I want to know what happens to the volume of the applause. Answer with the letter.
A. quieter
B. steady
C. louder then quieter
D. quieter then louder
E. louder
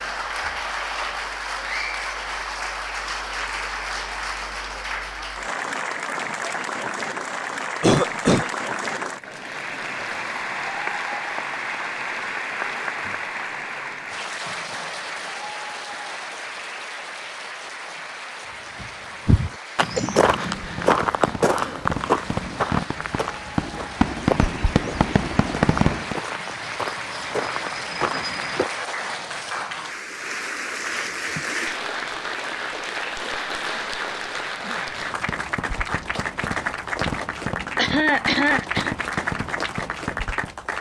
D.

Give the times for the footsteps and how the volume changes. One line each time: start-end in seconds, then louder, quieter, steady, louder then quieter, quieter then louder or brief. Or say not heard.
18.8-28.7 quieter.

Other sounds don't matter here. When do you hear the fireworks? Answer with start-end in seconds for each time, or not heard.
20.6-26.2, 34.9-40.5.